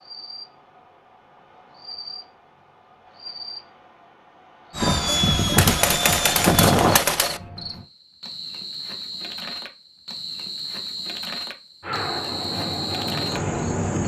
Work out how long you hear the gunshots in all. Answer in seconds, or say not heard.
2 s.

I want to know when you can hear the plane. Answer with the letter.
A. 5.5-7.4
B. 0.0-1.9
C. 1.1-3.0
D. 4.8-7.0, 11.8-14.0
D.